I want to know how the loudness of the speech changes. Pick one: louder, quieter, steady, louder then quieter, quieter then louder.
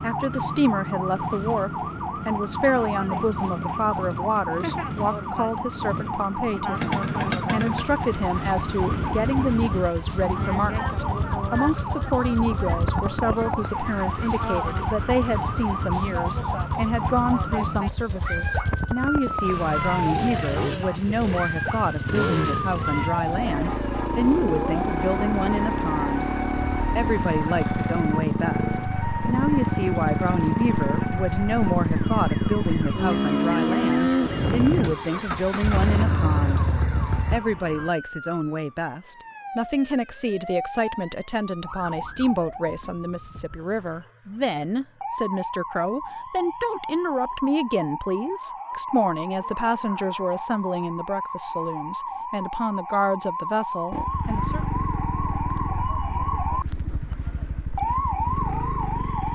steady.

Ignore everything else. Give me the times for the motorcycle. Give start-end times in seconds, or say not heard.
6.8-37.4, 53.9-59.2.